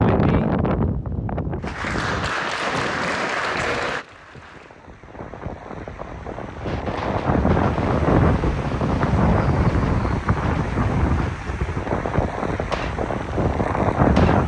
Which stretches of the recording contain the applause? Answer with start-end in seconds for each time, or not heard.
1.6-4.8.